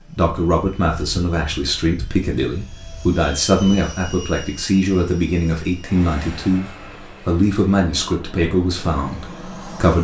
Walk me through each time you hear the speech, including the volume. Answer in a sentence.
You can hear the speech from 0.1 to 10.0 s, at a steady volume.